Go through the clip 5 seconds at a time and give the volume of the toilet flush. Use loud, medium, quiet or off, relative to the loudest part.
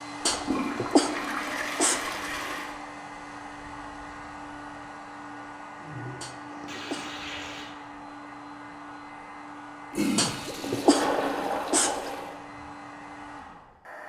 loud, medium, loud.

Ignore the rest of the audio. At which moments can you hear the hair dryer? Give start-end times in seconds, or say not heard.
0.0-14.0.